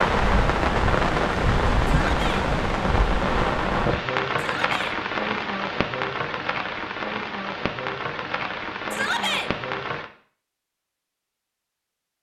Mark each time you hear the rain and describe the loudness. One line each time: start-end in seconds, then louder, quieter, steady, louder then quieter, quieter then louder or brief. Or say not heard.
0.0-10.1 quieter.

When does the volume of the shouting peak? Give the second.
9 s.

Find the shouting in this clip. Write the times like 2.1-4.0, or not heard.
1.9-2.5, 4.4-5.0, 8.9-9.5.